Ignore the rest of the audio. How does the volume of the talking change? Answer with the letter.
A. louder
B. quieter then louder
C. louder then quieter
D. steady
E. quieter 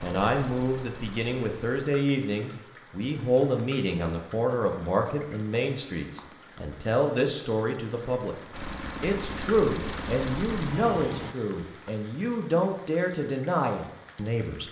D.